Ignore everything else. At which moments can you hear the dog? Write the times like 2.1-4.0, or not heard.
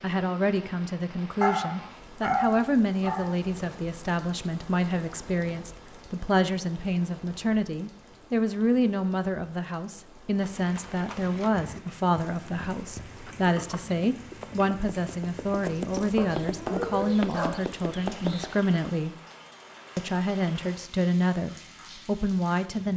1.4-3.4, 16.0-17.6.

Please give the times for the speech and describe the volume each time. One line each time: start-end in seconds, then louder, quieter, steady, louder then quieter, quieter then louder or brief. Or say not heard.
0.0-19.1 steady
19.9-22.9 brief.